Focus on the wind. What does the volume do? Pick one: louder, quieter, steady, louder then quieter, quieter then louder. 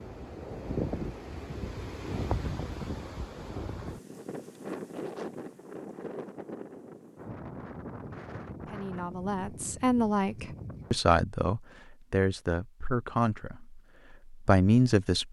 quieter.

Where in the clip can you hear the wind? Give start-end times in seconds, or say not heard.
0.0-11.0.